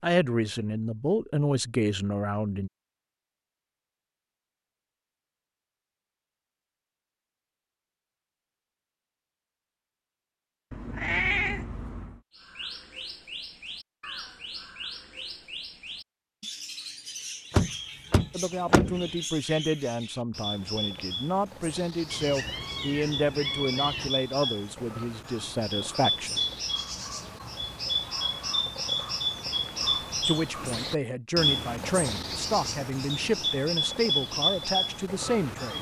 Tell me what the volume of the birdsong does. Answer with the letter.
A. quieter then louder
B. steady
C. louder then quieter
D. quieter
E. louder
E.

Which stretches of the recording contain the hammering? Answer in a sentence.
You can't hear the hammering here.